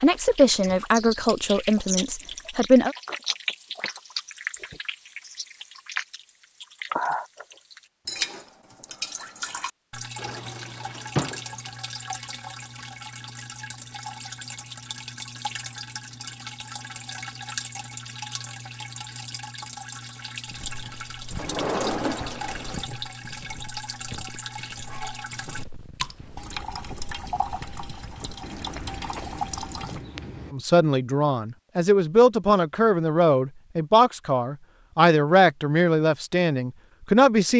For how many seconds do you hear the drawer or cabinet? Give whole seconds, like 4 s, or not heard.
3 s.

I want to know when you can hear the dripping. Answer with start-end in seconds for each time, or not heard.
0.0-30.1.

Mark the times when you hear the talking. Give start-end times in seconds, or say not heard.
0.0-3.0, 30.5-37.5.